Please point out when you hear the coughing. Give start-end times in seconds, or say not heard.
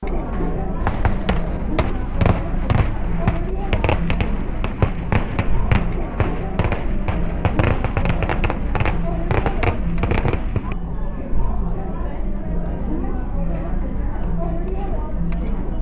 not heard.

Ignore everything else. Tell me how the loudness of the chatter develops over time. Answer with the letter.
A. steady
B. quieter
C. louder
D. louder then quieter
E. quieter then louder
A.